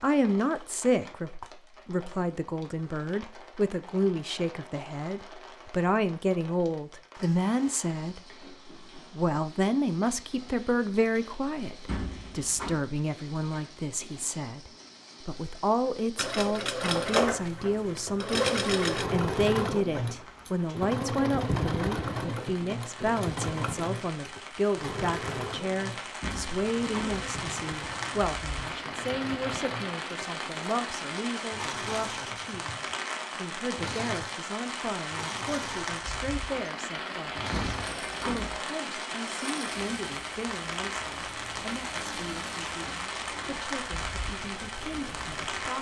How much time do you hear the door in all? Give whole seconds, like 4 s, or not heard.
3 s.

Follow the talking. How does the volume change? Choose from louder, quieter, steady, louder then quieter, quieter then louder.
quieter.